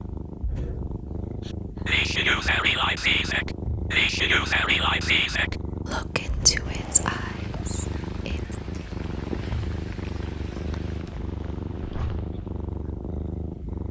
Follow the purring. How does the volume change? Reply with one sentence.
The loudness of the purring stays about the same.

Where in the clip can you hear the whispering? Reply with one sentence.
You can hear the whispering from 1.4 to 8.6 s.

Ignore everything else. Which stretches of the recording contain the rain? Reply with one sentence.
You can hear the rain from 6.7 to 13.8 s.